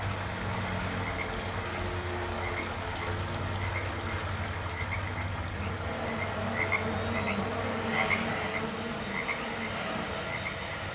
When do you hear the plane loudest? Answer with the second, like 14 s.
8 s.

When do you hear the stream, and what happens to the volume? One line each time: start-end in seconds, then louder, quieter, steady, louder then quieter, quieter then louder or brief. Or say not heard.
0.0-10.8 quieter.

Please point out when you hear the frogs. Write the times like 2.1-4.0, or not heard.
0.0-10.6.